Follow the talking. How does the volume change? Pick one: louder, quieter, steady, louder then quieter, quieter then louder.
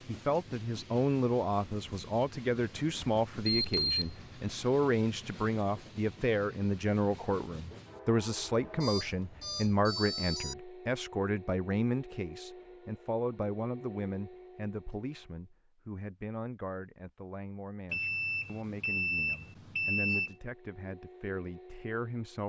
quieter.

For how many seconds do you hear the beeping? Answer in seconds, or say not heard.
5 s.